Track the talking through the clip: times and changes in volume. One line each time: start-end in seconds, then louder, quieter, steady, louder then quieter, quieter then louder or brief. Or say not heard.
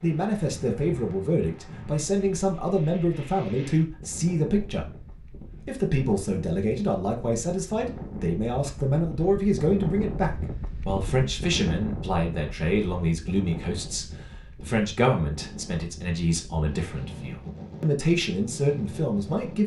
0.0-4.8 steady
5.7-19.6 steady.